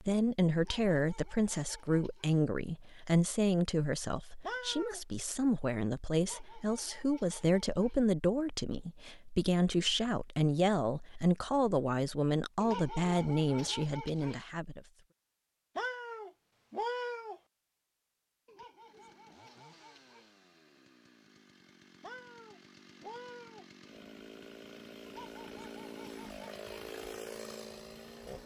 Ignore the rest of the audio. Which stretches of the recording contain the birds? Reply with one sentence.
The birds can't be heard in this clip.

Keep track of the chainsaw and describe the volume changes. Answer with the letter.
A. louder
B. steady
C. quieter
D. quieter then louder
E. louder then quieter
A.